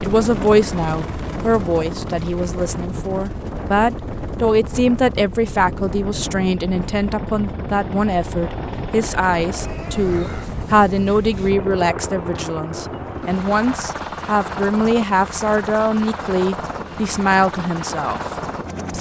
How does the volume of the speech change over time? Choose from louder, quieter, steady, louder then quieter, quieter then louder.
steady.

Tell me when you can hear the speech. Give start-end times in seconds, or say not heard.
0.0-18.9.